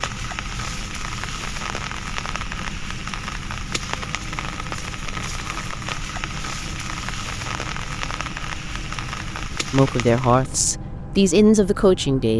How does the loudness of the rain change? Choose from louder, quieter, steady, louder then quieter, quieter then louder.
steady.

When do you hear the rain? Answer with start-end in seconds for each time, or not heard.
0.0-10.6.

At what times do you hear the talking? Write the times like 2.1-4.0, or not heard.
9.7-12.3.